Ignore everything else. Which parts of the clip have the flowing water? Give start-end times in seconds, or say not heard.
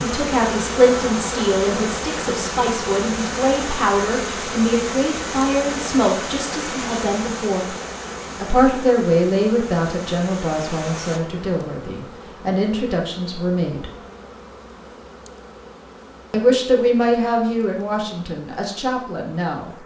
0.0-11.2.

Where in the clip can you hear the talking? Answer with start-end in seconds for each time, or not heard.
0.0-7.8, 8.4-13.9, 16.3-19.7.